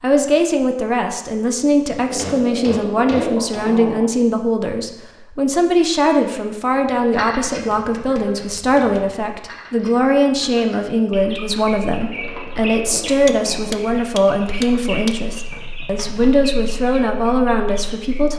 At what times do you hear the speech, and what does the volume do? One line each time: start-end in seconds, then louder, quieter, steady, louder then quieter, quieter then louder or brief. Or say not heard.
0.0-18.3 steady.